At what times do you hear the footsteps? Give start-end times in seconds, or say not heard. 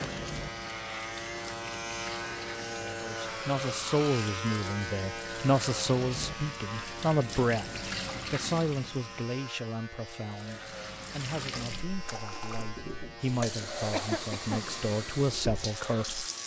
not heard.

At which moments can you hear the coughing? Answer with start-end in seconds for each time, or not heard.
13.9-14.8.